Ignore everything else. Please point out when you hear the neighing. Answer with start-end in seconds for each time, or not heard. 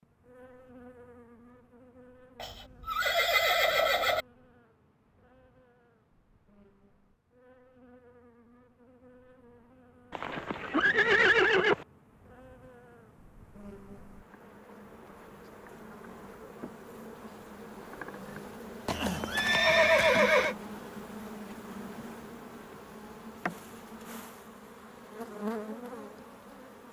2.4-4.2, 10.1-11.8, 18.9-20.6.